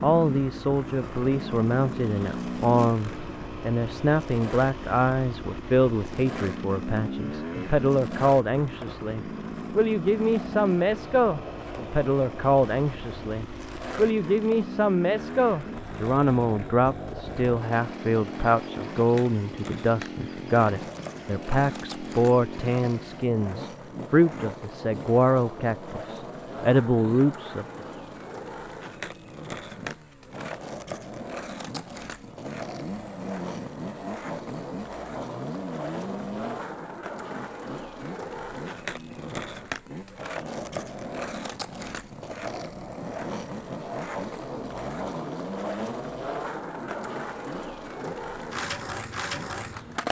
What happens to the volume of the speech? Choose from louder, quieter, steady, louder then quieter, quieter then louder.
steady.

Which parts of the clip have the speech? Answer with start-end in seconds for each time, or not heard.
0.0-27.9.